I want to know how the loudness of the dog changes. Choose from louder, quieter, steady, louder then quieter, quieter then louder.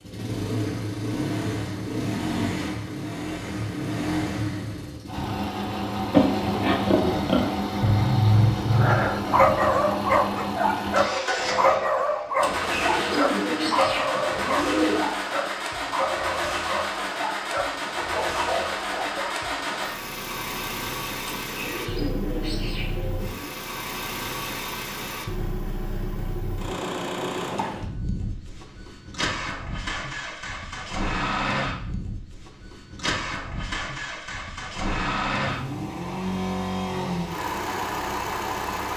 quieter.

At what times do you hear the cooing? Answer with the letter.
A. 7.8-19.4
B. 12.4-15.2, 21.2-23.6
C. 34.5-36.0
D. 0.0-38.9
B.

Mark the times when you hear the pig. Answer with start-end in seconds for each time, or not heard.
6.1-7.6.